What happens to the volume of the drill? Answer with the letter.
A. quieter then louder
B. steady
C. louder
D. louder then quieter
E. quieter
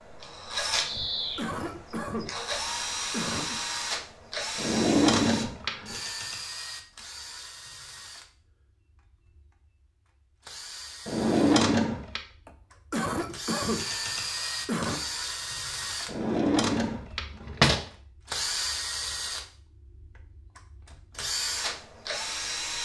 A.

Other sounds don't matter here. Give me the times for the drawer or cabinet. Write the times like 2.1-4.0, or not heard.
4.5-6.0, 11.1-12.2, 16.1-17.9.